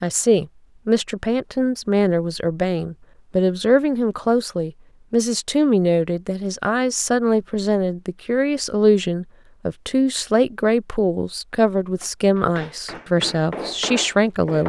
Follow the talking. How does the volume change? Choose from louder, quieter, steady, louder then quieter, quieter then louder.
steady.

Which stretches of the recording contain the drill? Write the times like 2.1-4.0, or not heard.
not heard.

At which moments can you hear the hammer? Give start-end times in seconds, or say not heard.
11.8-14.6.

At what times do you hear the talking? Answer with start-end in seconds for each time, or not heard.
0.0-14.6.